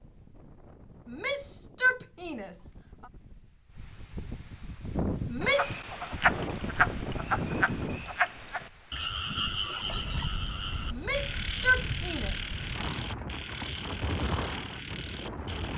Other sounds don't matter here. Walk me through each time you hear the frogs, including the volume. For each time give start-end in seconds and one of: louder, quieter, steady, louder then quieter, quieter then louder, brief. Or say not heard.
5.4-15.7 quieter.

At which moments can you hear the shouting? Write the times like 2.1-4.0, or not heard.
1.1-3.0, 5.2-5.9, 10.9-12.3.